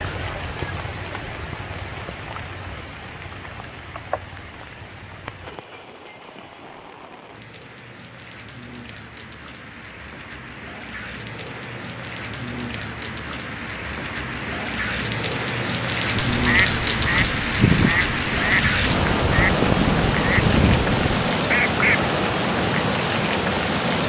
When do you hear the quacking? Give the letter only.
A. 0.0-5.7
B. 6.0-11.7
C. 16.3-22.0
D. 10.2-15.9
C.